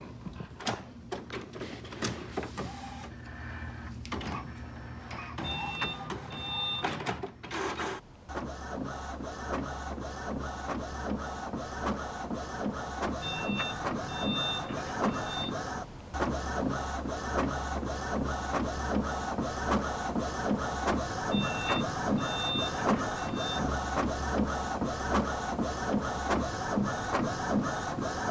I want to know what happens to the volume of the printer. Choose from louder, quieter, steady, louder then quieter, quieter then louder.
louder.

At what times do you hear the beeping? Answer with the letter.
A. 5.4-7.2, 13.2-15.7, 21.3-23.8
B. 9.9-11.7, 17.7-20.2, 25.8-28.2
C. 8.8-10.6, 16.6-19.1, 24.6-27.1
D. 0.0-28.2
A.